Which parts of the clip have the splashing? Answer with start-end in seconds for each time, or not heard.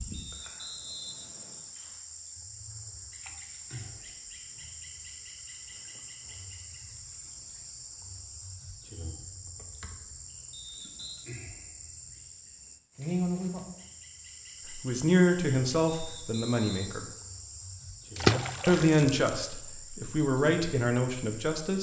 18.1-19.3.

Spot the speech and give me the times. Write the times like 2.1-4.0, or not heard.
14.8-17.1, 18.6-21.7.